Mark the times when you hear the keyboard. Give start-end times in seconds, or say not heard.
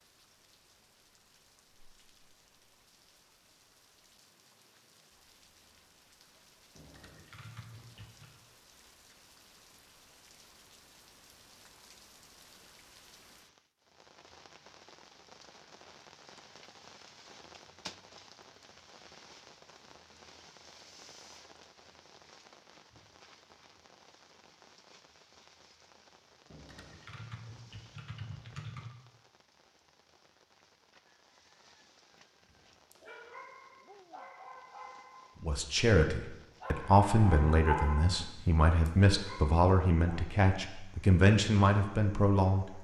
6.8-8.4, 26.5-28.9.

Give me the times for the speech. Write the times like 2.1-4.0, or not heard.
35.4-42.8.